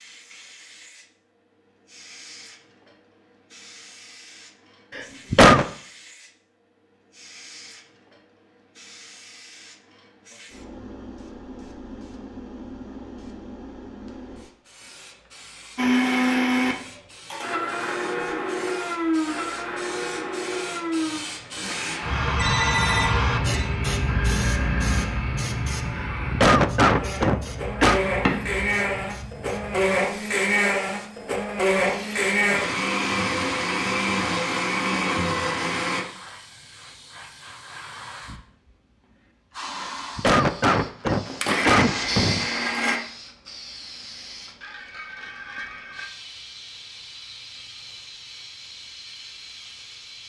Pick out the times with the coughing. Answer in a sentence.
The coughing can be heard from 5.0 to 5.7 s, from 25.9 to 28.0 s and from 39.8 to 42.5 s.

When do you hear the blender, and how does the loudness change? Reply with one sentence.
You can hear the blender from 15.8 to 36.0 s, getting quieter then louder; and briefly from 41.2 to 43.0 s.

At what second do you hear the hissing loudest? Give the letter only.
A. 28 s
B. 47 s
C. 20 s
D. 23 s
D.